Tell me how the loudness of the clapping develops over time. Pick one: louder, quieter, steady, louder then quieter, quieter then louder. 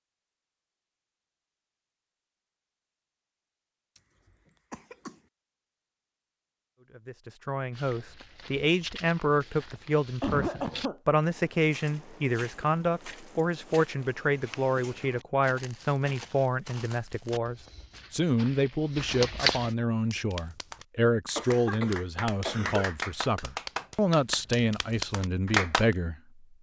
louder.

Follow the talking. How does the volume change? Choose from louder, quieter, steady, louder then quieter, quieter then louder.
steady.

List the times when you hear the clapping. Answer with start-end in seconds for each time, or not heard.
20.0-25.9.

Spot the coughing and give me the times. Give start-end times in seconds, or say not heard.
4.7-5.2, 10.2-11.0, 21.4-22.9.